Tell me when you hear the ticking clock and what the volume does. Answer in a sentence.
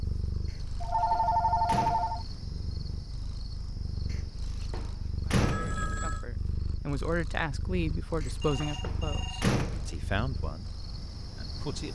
The ticking clock can't be heard in this clip.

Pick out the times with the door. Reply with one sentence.
The door can be heard from 0.5 to 2.2 s, from 4.1 to 5.8 s and from 8.2 to 10.2 s.